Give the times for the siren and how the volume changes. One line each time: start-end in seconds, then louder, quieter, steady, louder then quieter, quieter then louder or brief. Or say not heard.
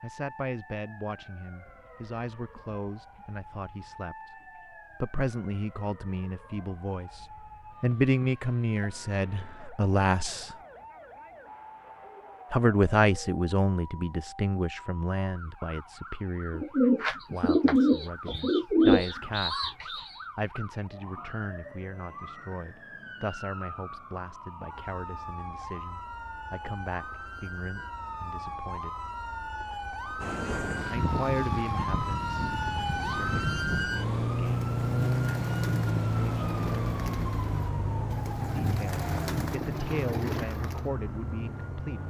0.0-42.0 louder.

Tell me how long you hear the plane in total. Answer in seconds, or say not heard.
4 s.